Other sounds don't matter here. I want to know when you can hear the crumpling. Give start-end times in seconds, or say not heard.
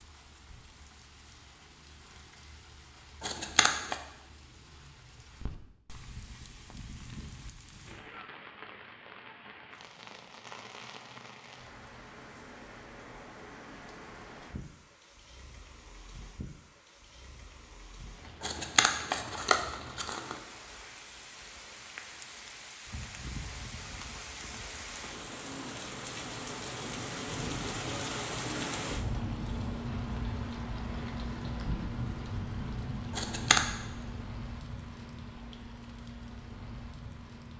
3.2-4.0, 18.4-20.4, 33.1-33.6.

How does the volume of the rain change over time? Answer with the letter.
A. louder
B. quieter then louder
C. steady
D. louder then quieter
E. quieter
A.